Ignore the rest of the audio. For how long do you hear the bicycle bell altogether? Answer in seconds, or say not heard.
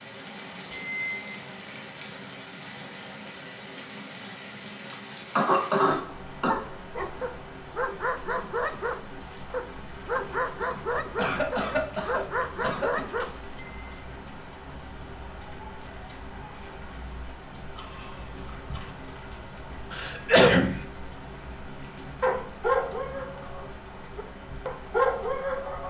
2 s.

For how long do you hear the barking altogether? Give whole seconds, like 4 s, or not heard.
10 s.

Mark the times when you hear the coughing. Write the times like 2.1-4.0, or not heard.
4.9-6.6, 11.2-13.1, 19.9-20.8.